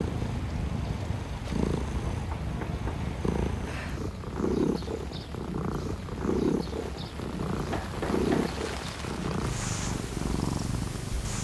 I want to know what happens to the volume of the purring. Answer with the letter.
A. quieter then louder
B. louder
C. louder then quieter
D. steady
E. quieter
D.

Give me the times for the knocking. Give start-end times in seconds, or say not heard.
1.4-3.0, 7.7-8.5.